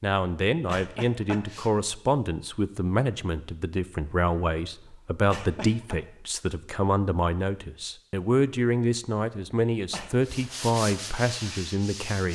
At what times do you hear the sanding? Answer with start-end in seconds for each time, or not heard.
10.2-12.3.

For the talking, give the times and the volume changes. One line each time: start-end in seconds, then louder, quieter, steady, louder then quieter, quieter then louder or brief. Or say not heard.
0.0-12.3 steady.